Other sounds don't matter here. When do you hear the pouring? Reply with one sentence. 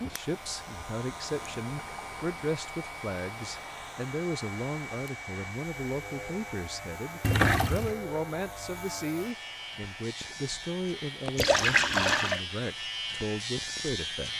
The pouring can be heard from 1.2 to 2.5 s, from 7.2 to 8.0 s and from 11.3 to 12.4 s.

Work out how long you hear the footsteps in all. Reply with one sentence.
You can't hear the footsteps here.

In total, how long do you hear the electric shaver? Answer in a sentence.
You can hear the electric shaver for 14 seconds altogether.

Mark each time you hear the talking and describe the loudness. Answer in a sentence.
You can hear the talking from 0.0 to 14.3 s, at a steady volume.